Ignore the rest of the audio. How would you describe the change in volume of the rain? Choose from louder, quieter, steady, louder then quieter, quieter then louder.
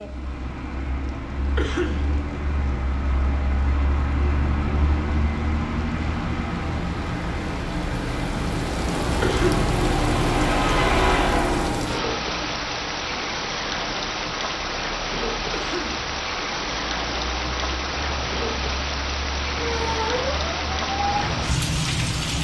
louder.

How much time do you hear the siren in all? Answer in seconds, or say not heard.
3 s.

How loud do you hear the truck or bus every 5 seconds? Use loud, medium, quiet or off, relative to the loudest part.
medium, loud, loud, quiet, quiet.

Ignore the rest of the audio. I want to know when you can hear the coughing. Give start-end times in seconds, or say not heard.
1.6-2.1, 9.2-9.7, 15.5-16.1.